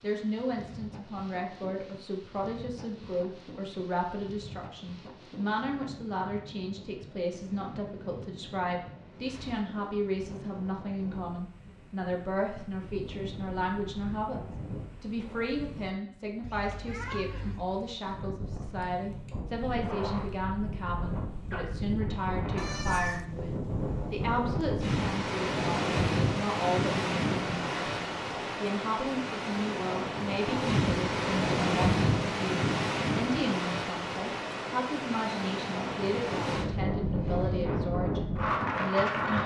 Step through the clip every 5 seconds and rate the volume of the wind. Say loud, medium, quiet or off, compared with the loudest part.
quiet, quiet, quiet, quiet, medium, loud, loud, loud.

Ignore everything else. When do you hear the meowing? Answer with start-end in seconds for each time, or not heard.
16.4-17.6, 22.6-23.2.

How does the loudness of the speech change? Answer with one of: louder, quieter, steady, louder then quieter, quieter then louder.
steady.